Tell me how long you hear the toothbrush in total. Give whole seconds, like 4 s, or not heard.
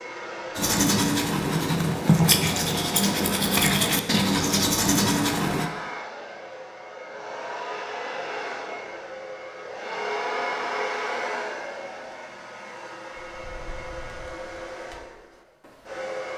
5 s.